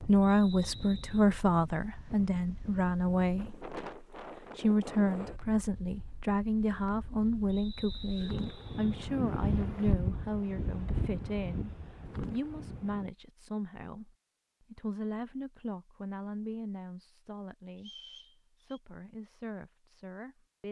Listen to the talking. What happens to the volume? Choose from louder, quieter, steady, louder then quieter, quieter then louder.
quieter.